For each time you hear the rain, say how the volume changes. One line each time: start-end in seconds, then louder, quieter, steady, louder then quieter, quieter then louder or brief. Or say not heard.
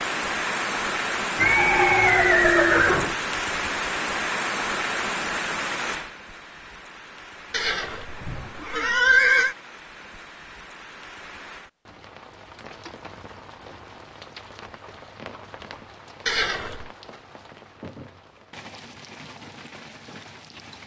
0.0-20.8 quieter.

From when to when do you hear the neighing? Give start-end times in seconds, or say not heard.
1.4-3.1, 7.5-9.6, 16.2-16.9.